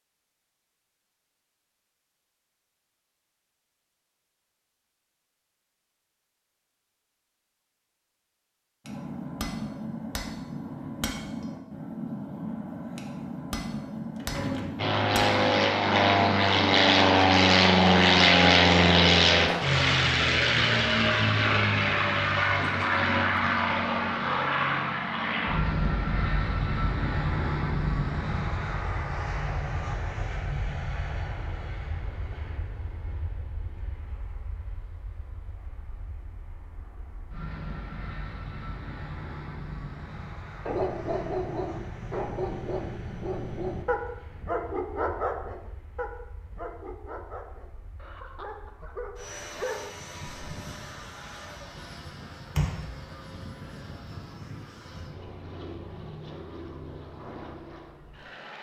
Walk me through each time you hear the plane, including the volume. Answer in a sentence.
The plane can be heard from 14.8 to 58.5 s, getting quieter then louder.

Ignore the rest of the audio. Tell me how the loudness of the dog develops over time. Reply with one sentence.
The volume of the dog goes down.